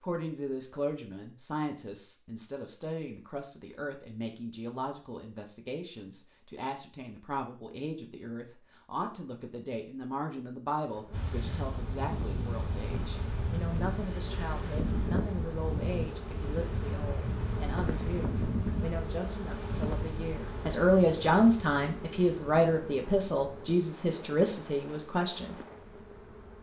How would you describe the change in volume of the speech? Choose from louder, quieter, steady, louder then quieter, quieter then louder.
louder.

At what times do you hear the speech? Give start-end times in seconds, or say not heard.
0.0-25.6.